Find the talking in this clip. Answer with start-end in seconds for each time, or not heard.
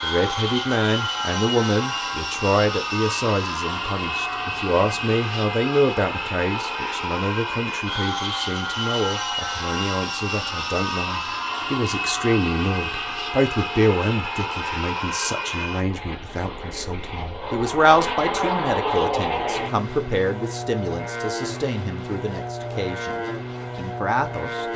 0.0-24.6.